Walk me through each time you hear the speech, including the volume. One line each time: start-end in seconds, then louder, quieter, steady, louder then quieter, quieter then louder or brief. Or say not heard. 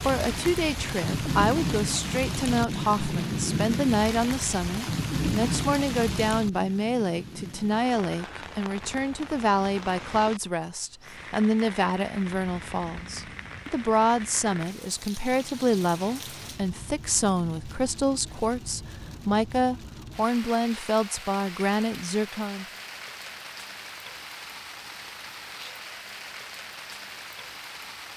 0.0-22.6 steady.